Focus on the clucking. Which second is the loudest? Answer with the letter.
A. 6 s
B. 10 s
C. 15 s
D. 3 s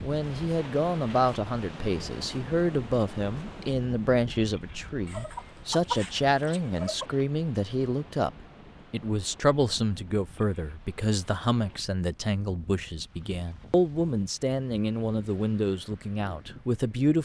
A.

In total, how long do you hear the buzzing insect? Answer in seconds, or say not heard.
not heard.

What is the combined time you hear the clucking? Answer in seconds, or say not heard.
2 s.